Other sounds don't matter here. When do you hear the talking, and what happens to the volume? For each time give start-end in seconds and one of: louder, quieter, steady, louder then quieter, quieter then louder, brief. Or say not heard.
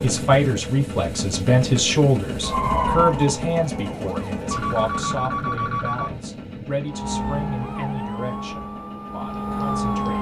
0.0-10.1 quieter.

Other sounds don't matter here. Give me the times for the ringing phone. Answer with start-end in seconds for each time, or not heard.
4.5-6.2.